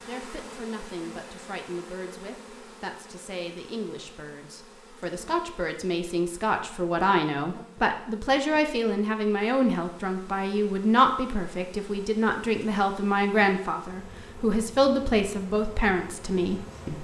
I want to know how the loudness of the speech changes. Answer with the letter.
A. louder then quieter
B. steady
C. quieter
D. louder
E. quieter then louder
D.